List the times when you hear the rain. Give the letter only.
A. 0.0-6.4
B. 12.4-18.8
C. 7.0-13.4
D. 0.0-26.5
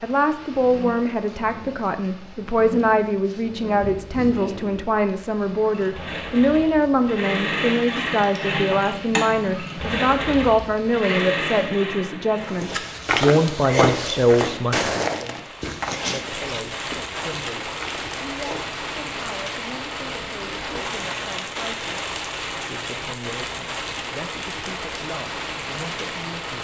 D.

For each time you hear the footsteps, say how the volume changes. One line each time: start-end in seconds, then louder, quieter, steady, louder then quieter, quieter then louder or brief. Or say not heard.
12.4-18.8 quieter.